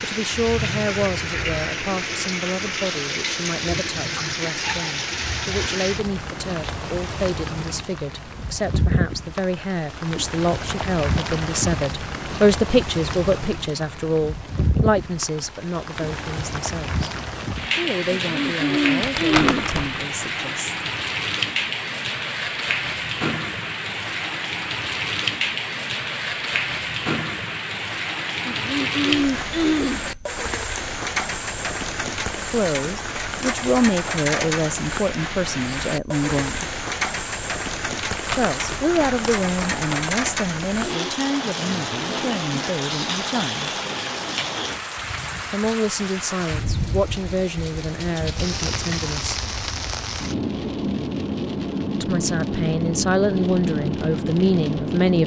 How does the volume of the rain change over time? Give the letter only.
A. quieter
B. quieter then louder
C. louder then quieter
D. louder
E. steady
E.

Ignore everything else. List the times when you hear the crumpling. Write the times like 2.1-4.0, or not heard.
19.0-20.1, 38.1-40.2.